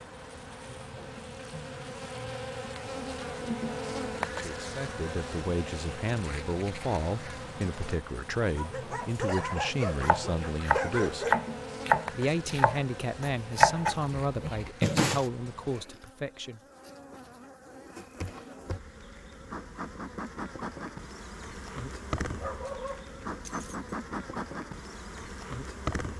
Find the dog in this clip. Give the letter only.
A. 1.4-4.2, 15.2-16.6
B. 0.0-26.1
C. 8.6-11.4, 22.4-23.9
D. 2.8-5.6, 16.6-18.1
C.